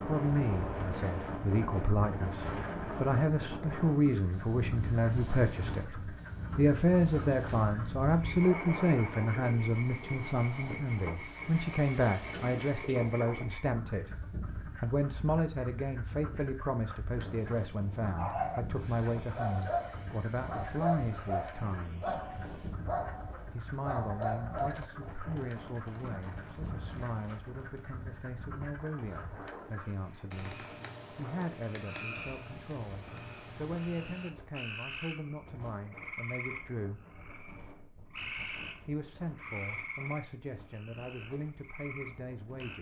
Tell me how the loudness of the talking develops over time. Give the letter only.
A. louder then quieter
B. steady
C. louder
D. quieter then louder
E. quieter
E.